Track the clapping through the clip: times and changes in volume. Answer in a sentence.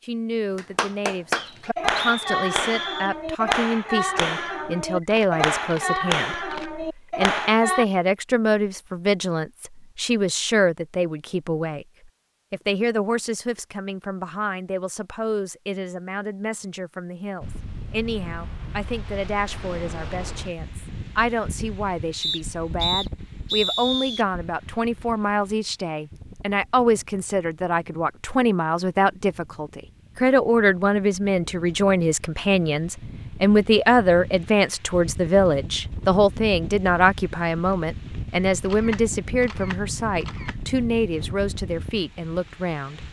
The clapping can be heard from 0.6 to 7.8 s, at a steady volume.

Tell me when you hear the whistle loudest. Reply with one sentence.
The loudest moment of the whistle is at 24 seconds.